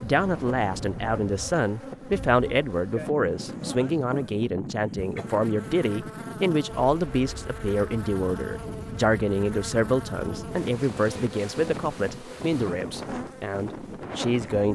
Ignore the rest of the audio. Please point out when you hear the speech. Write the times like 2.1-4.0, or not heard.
0.0-14.7.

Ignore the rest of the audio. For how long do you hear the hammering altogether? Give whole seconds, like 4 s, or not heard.
not heard.